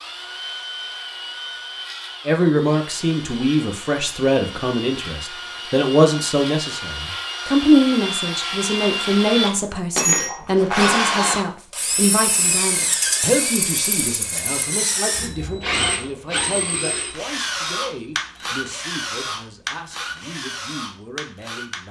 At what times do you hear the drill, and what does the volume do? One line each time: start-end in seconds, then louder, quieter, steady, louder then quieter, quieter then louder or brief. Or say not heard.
0.0-21.8 louder then quieter.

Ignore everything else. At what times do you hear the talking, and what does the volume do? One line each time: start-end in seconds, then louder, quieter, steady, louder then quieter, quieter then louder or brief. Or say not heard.
2.2-21.8 quieter.